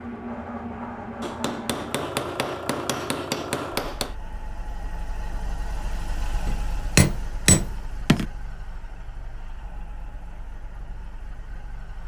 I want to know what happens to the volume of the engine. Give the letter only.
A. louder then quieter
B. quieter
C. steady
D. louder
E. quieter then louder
B.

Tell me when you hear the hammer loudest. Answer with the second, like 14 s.
7 s.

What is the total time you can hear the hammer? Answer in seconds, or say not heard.
5 s.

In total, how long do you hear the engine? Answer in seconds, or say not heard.
12 s.